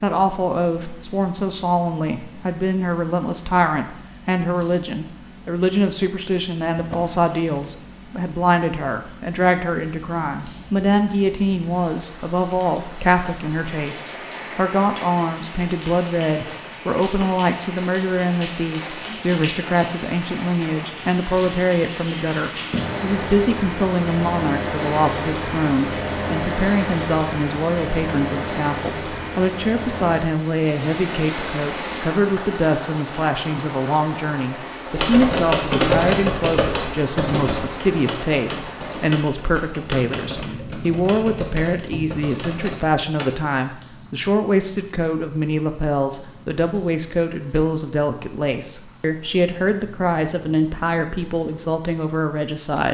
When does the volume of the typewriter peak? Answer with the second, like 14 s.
36 s.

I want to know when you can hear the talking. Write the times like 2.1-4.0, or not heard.
0.0-52.9.